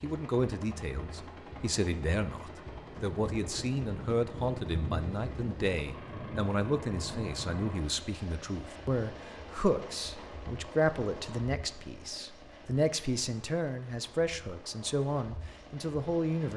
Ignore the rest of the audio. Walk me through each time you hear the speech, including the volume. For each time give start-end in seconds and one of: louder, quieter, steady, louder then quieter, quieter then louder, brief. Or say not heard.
0.0-16.5 steady.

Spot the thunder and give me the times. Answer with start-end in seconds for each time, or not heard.
3.0-7.7.